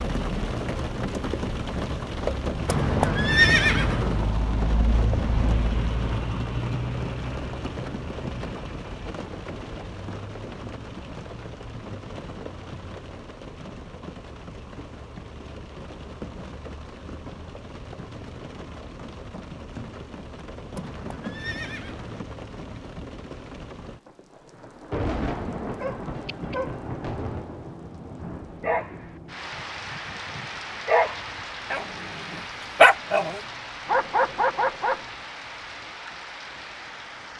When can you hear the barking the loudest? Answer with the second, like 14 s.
33 s.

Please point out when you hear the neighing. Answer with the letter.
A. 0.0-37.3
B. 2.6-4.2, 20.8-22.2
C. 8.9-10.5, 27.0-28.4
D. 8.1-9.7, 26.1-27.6
B.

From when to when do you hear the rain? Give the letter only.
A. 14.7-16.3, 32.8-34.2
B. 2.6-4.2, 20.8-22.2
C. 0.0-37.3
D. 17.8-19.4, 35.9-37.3
C.